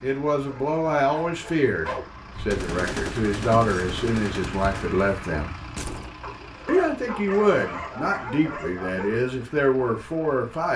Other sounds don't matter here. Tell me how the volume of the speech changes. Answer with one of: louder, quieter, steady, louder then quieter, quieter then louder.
steady.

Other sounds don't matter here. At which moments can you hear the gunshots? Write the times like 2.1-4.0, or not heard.
2.3-6.2.